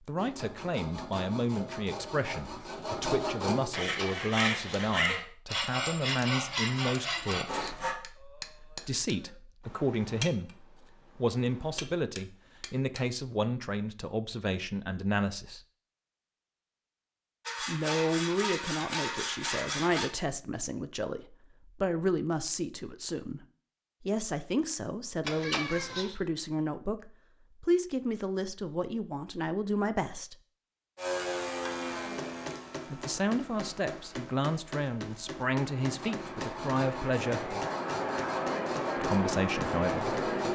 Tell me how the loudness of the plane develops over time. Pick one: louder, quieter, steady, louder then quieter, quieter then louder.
quieter then louder.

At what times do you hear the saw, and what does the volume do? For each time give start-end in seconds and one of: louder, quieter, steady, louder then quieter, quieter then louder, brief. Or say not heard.
0.1-8.0 louder
17.4-20.1 brief
35.8-40.5 steady.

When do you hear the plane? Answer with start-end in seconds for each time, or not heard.
30.9-40.5.